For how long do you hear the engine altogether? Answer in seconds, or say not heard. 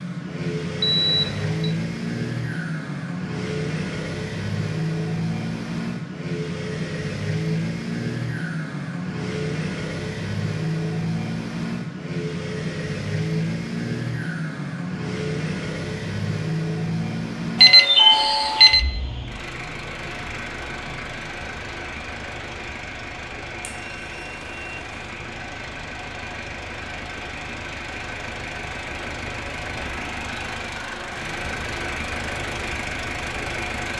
34 s.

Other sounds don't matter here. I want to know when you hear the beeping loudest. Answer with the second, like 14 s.
18 s.